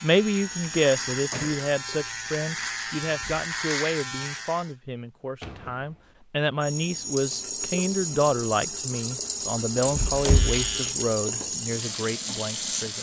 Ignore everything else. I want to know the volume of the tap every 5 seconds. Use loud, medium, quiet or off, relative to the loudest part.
medium, loud, loud.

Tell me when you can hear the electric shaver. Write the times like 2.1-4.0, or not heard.
0.0-4.8, 10.2-12.9.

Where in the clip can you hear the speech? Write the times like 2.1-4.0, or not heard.
0.0-12.9.